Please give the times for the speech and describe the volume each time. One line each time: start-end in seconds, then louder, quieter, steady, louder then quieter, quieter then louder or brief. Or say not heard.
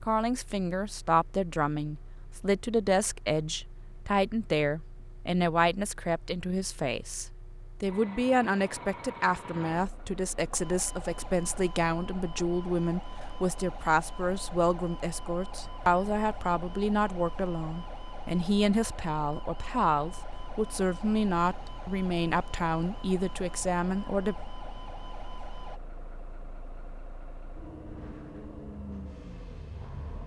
0.0-24.4 steady.